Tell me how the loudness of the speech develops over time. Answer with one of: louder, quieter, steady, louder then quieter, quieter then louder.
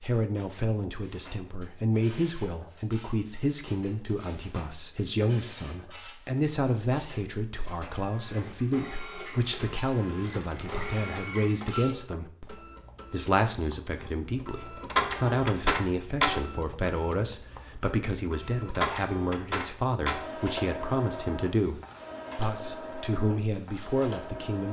steady.